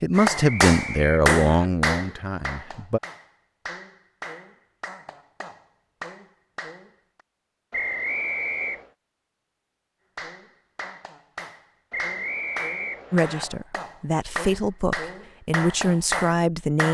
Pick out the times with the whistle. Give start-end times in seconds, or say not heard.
0.3-1.7, 7.7-8.9, 11.9-13.4.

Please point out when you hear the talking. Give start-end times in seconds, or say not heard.
0.0-3.0, 13.1-16.9.